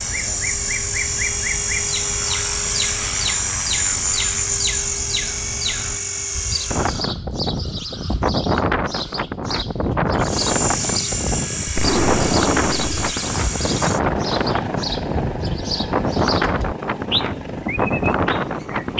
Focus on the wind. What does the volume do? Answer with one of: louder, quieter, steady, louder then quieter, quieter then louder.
steady.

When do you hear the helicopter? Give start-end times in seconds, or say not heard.
0.0-7.0, 10.2-18.9.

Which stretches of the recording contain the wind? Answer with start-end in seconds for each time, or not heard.
6.7-18.9.